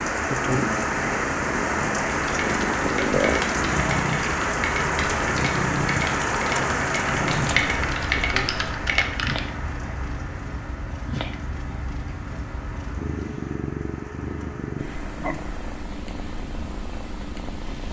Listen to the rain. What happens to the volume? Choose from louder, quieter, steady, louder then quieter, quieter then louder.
quieter.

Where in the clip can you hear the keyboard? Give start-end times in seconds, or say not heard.
2.1-9.4.